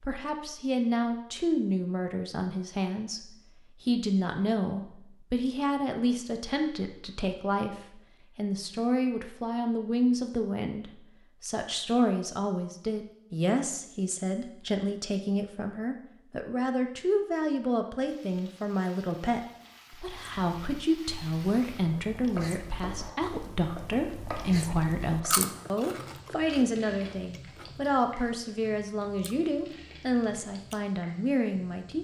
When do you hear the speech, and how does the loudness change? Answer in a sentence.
The speech can be heard from 0.0 to 31.9 s, at a steady volume.